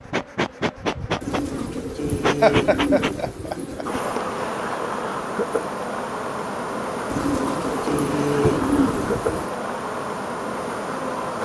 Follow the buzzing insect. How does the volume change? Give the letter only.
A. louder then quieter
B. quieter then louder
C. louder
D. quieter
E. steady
E.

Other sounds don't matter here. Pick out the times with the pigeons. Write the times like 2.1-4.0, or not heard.
1.2-4.0, 7.1-9.5.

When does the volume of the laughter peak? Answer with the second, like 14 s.
3 s.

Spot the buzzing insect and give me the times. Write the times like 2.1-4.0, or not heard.
0.0-11.4.